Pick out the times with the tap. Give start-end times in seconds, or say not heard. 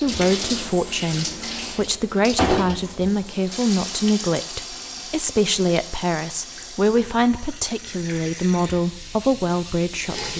0.0-10.3.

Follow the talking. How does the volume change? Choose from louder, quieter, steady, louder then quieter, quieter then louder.
steady.